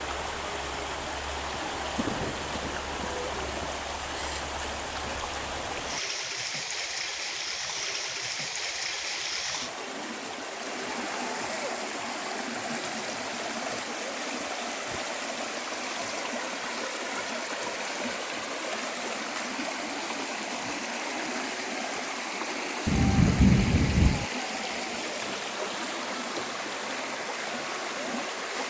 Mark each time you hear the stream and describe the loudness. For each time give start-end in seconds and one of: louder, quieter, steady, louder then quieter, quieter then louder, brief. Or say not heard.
0.0-28.6 steady.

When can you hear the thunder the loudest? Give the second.
23 s.